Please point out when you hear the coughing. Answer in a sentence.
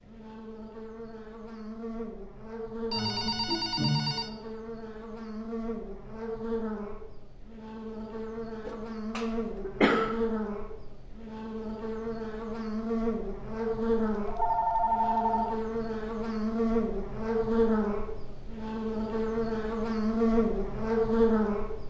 The coughing can be heard from 8.7 to 10.1 s.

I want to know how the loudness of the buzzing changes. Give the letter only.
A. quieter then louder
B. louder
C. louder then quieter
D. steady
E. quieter
B.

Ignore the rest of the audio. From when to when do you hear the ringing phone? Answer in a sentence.
The ringing phone can be heard from 2.9 to 4.3 s and from 14.1 to 15.7 s.